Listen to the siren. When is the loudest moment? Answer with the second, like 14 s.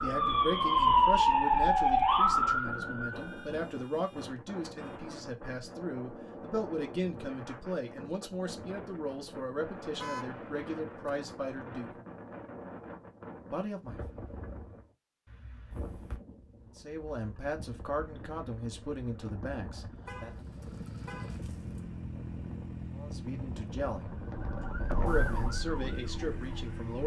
1 s.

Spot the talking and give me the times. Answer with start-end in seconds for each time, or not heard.
0.0-11.9, 13.5-14.0, 16.6-20.3, 22.9-24.1, 25.1-27.0.